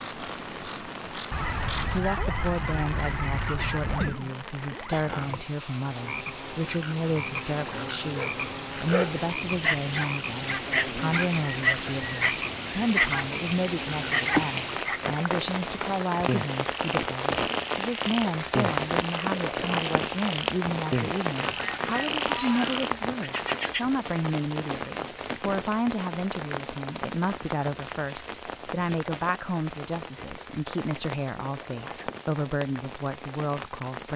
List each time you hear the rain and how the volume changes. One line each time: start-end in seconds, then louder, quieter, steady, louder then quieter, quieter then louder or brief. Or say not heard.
0.0-34.1 louder then quieter.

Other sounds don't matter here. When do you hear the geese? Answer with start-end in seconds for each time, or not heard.
1.3-4.2, 21.4-22.9.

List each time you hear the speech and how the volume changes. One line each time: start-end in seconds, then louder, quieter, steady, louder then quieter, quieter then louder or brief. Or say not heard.
1.8-34.1 steady.